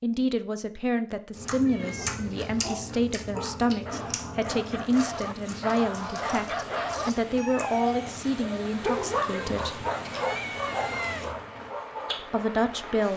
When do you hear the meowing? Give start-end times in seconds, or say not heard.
1.6-2.5, 9.9-11.3.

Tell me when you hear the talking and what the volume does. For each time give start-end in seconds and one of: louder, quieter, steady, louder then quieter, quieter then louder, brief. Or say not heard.
0.0-9.8 steady
12.3-13.1 brief.